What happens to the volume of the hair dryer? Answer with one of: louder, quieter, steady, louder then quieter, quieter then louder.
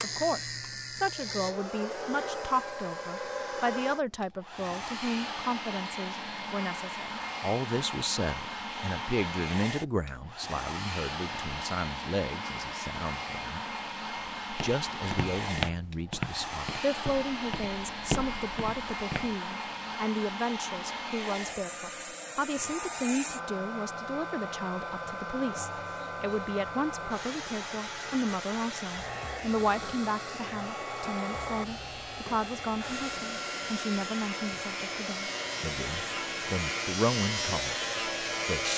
steady.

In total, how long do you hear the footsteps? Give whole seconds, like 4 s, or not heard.
5 s.